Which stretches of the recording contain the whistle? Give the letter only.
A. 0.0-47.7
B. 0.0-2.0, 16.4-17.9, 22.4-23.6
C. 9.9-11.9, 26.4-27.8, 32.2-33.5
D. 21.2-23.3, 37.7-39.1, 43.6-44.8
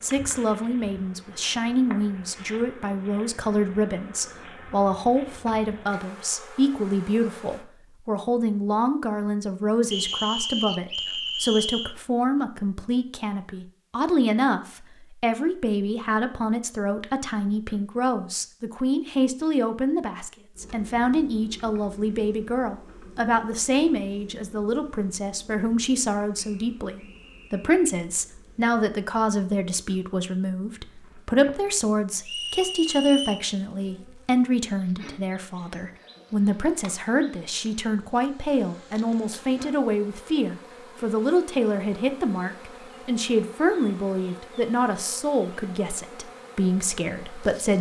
C.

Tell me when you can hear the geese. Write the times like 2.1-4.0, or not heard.
not heard.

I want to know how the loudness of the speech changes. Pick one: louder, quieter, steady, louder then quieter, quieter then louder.
steady.